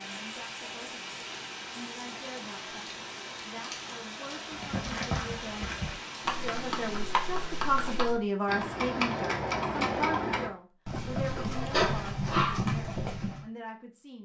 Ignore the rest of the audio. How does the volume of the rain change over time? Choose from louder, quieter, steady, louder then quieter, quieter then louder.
steady.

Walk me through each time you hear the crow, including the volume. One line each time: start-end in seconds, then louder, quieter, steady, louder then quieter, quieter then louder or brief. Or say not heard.
not heard.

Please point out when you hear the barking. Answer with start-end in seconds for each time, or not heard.
11.2-12.7.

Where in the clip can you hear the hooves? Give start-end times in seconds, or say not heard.
4.5-13.4.